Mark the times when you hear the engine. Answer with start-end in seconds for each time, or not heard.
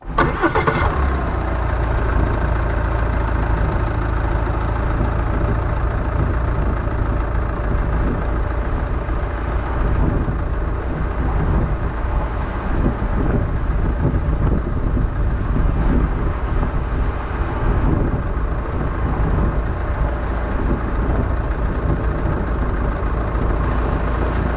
0.0-24.5.